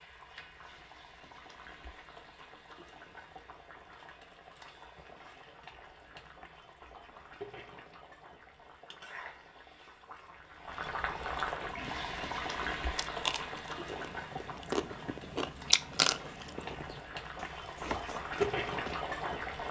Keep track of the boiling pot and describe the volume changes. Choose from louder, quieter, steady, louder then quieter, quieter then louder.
louder.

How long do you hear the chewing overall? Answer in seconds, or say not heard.
7 s.